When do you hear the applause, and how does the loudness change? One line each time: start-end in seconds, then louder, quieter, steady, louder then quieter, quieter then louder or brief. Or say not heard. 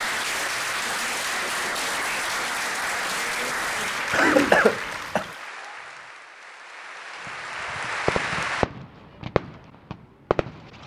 0.0-8.7 quieter then louder.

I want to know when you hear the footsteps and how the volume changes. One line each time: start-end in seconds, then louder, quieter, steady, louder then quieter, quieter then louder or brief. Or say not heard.
not heard.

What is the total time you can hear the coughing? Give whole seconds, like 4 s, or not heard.
2 s.